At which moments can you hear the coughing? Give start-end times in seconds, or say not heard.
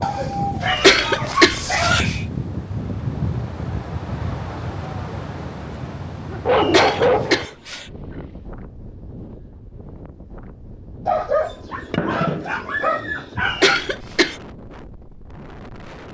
0.7-2.2, 6.5-7.8, 13.4-14.3.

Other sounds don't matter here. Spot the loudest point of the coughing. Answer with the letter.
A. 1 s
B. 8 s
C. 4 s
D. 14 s
A.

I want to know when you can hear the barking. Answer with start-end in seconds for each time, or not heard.
0.0-2.0, 6.2-8.2, 11.1-13.8.